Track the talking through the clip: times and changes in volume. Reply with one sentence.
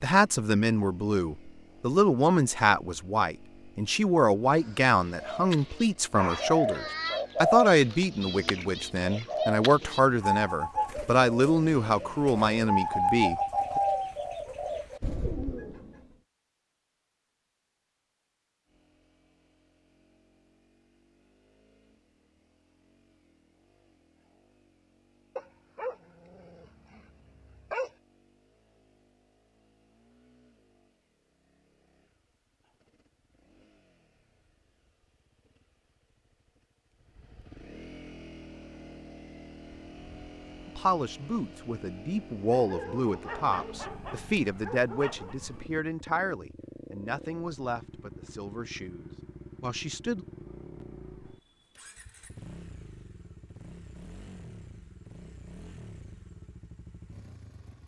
The talking can be heard from 0.0 to 13.8 s, at a steady volume; and from 40.6 to 50.2 s, getting quieter.